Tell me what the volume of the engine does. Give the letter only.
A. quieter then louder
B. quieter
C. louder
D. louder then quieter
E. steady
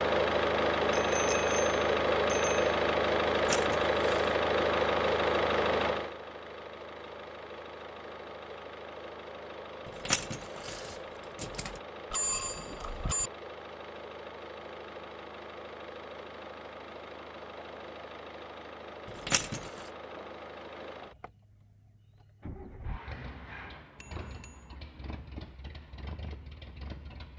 B.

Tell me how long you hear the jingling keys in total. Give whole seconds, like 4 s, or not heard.
4 s.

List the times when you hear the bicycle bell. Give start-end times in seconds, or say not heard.
0.9-2.6, 12.1-13.3, 24.0-24.6.